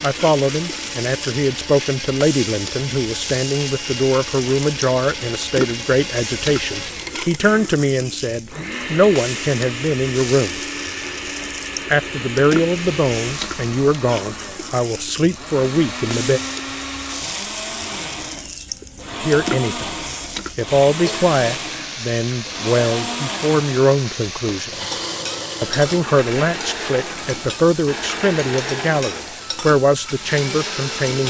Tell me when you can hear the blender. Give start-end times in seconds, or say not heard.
0.0-31.2.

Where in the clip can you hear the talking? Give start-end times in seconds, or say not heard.
0.0-10.6, 11.8-16.4, 19.2-19.9, 20.6-24.7, 25.6-31.2.